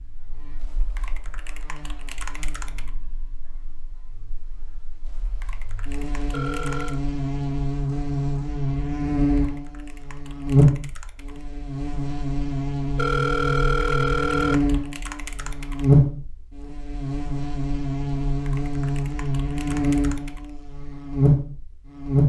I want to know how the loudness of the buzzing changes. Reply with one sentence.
The loudness of the buzzing goes up.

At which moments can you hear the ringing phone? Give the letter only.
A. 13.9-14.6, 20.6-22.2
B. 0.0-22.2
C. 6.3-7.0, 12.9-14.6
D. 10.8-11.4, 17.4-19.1
C.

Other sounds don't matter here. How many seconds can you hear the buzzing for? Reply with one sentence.
You can hear the buzzing for 22 seconds altogether.